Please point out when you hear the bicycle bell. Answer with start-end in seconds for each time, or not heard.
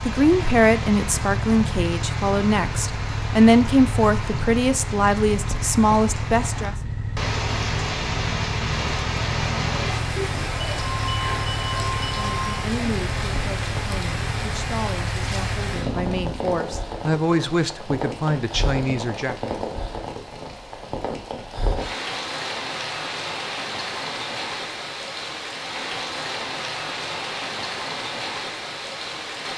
10.8-12.6.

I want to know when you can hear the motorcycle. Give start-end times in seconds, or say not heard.
0.0-16.5.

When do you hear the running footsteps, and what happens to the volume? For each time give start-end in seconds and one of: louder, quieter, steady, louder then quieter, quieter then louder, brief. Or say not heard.
not heard.